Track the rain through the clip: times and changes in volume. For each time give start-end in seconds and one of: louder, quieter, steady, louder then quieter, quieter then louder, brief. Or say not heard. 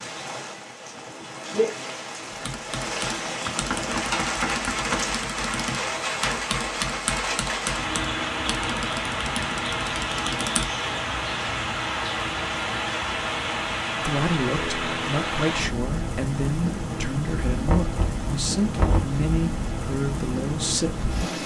0.0-21.4 steady.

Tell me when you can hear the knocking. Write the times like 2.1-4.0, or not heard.
3.5-5.1, 17.6-19.1.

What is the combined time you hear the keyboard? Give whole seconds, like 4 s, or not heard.
8 s.